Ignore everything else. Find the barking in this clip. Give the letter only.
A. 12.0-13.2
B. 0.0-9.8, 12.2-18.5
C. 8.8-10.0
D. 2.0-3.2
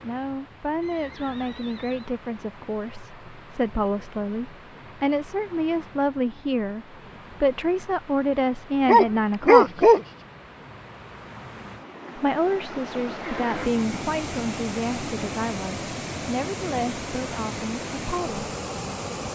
C.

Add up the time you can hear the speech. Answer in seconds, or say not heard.
16 s.